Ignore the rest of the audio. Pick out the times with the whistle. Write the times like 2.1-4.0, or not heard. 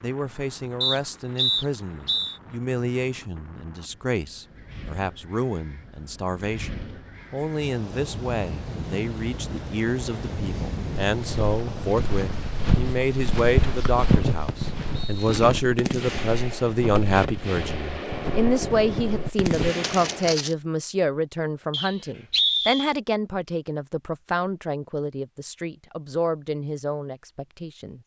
0.8-2.4, 13.8-15.3, 21.7-22.9.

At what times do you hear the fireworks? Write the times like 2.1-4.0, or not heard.
15.2-20.4.